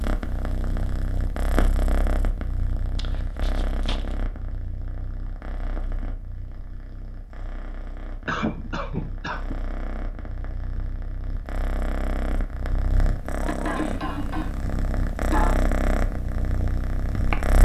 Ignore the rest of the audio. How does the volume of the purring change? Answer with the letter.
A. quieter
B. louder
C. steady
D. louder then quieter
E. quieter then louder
E.